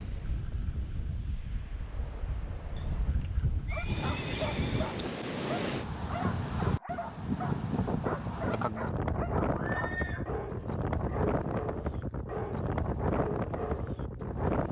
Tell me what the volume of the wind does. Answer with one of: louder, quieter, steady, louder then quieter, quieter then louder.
louder.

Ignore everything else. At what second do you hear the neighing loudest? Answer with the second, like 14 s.
10 s.